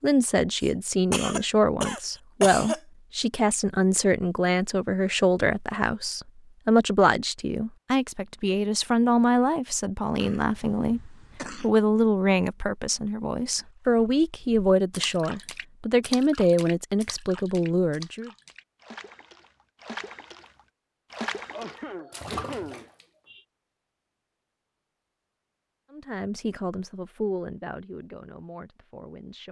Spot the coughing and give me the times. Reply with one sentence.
You can hear the coughing from 0.6 to 2.8 s, from 10.2 to 11.7 s and from 21.5 to 23.4 s.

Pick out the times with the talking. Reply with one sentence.
You can hear the talking from 0.0 to 18.3 s and from 25.9 to 29.4 s.